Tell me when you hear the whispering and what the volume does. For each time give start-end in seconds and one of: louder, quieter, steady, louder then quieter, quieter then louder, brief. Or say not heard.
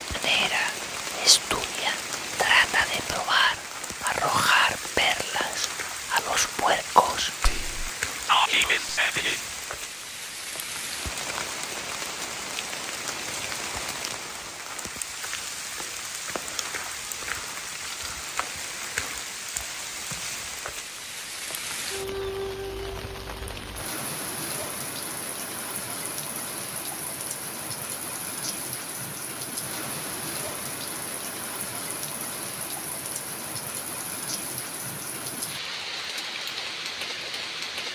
0.1-9.4 steady.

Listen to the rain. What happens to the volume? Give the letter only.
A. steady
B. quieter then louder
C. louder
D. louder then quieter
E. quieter
A.